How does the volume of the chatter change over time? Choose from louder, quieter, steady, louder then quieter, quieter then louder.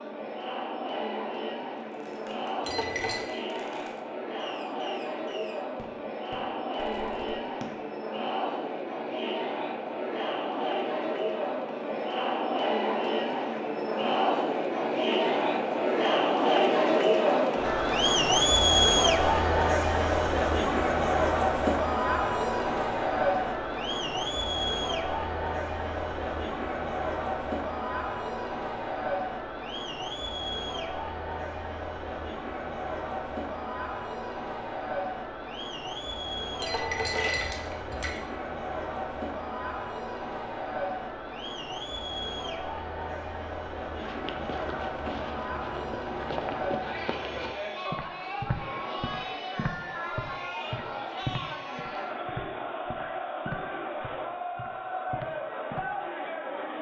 louder then quieter.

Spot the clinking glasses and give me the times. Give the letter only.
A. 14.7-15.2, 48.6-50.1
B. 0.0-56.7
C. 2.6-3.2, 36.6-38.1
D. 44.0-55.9
C.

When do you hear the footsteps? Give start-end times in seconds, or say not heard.
44.0-55.9.